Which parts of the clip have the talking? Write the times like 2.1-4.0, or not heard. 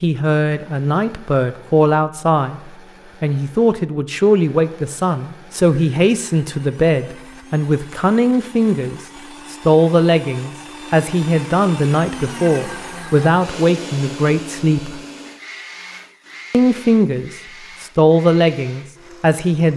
0.0-15.0, 16.5-19.7.